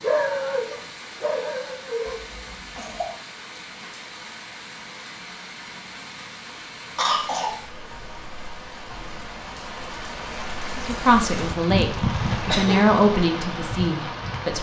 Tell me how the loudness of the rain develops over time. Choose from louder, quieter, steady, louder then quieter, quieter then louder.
louder.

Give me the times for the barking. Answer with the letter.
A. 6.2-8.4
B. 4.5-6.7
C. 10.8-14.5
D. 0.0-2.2
D.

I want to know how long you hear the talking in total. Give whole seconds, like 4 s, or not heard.
4 s.